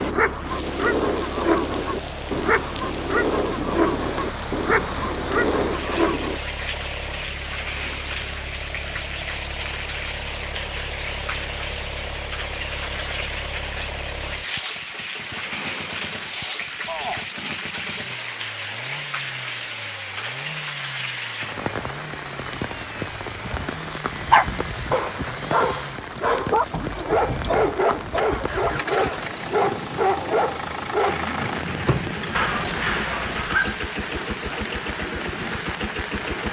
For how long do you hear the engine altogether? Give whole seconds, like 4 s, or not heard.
36 s.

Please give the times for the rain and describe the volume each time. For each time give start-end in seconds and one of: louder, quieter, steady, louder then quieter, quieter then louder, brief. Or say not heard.
0.0-36.4 steady.